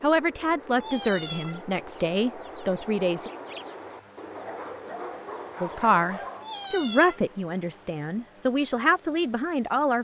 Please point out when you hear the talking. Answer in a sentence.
The talking can be heard from 0.0 to 3.3 s and from 5.6 to 9.9 s.